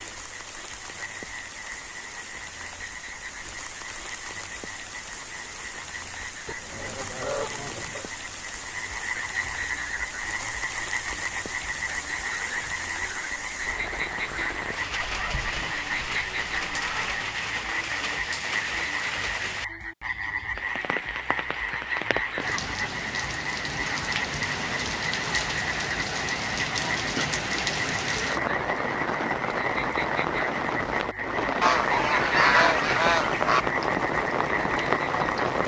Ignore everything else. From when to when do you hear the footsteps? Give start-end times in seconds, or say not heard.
not heard.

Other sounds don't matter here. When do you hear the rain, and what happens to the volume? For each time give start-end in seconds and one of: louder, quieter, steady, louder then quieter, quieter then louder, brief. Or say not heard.
0.0-35.6 louder.